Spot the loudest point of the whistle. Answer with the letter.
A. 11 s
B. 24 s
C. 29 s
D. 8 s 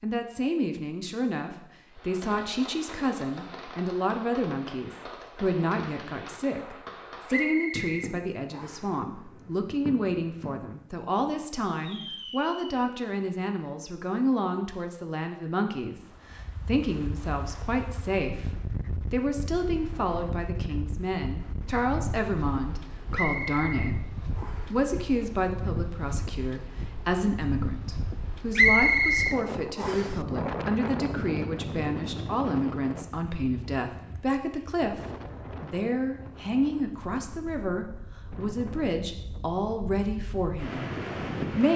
C.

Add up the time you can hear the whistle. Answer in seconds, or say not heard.
5 s.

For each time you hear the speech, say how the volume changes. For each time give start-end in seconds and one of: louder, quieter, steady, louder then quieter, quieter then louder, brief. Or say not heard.
0.0-24.0 steady
24.7-41.7 steady.